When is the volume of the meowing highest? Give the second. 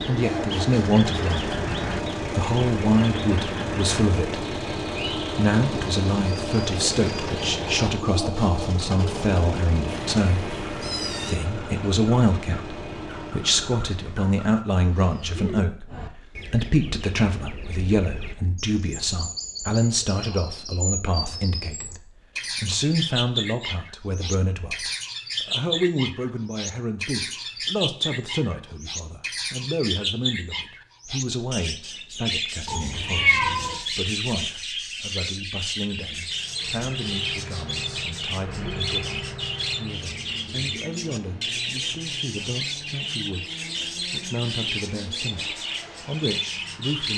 33 s.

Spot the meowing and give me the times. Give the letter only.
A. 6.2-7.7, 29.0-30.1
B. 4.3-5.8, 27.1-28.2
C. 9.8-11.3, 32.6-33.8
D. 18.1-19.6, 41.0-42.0
C.